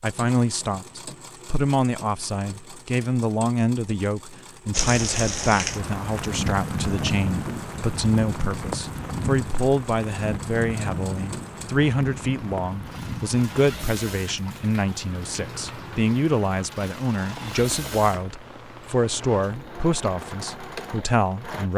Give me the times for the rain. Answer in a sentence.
The rain can be heard from 4.7 to 21.7 s.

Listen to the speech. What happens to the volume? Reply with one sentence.
The loudness of the speech stays about the same.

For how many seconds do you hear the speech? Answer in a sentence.
You can hear the speech for 22 seconds altogether.